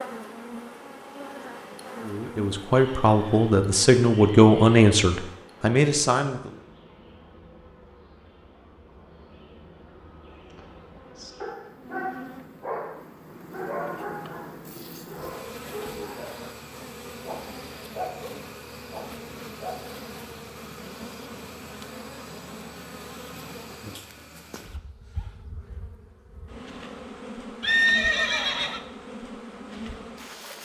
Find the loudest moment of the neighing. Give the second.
28 s.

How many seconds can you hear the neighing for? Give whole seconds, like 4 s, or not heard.
4 s.